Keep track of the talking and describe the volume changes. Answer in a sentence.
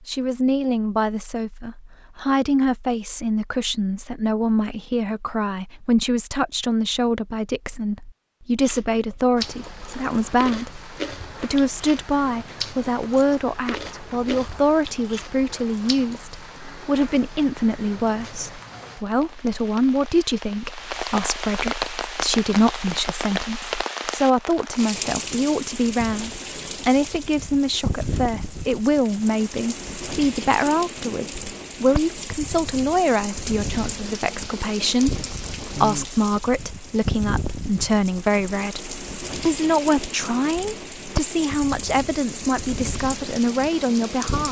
The loudness of the talking stays about the same.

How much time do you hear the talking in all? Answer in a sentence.
You can hear the talking for 44 seconds altogether.